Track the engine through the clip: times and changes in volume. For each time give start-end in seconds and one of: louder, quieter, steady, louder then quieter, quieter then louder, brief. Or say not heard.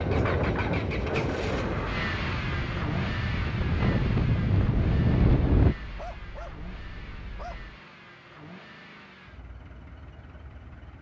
0.0-10.9 quieter.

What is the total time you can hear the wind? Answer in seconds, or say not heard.
6 s.